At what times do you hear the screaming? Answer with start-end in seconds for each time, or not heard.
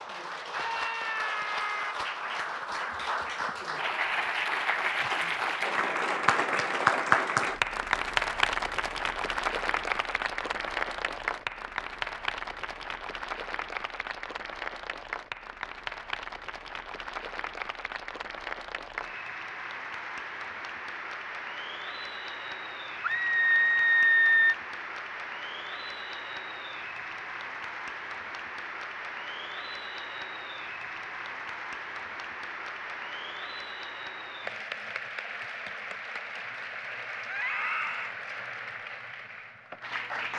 0.5-1.9, 23.0-24.6, 37.2-38.1.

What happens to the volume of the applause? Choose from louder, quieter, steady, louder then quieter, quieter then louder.
quieter.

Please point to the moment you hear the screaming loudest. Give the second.
24 s.